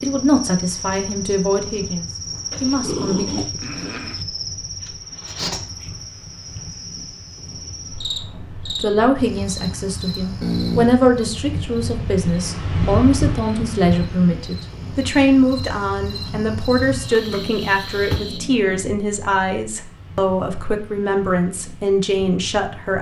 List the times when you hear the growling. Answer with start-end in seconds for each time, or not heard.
2.5-4.2, 10.4-10.9, 17.2-18.9.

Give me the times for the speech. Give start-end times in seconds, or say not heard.
0.0-3.2, 8.8-22.9.